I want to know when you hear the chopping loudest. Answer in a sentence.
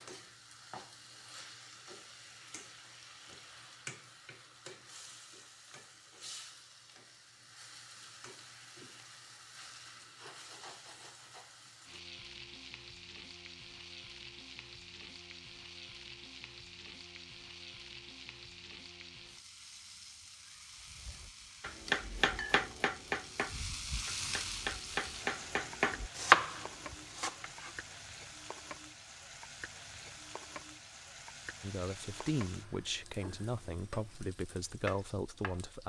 The volume of the chopping peaks at 26 seconds.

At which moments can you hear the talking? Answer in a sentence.
The talking can be heard from 31.6 to 35.8 s.